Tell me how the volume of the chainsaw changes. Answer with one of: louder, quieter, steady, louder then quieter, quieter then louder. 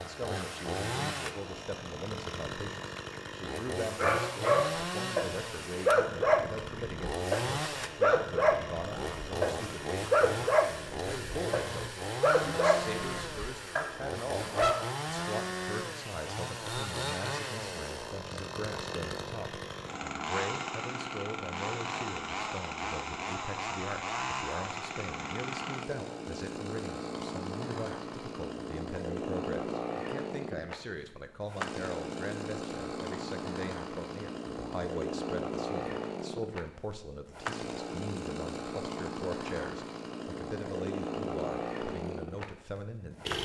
steady.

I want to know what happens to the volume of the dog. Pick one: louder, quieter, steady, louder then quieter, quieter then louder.
quieter.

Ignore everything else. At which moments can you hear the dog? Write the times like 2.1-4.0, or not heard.
4.0-14.8.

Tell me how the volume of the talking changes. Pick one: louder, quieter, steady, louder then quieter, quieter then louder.
steady.